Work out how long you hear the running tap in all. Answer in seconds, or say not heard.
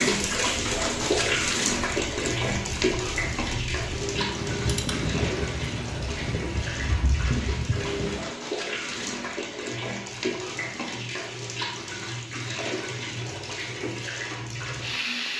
15 s.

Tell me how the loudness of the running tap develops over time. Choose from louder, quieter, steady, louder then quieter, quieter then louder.
quieter.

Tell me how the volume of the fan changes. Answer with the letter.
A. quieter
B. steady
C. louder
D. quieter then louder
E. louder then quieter
C.